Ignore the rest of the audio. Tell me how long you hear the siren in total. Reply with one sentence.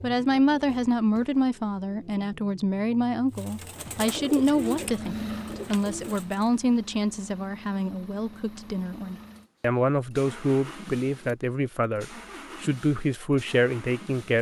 You can't hear the siren here.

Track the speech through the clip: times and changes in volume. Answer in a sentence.
The speech can be heard from 0.0 to 14.3 s, at a steady volume.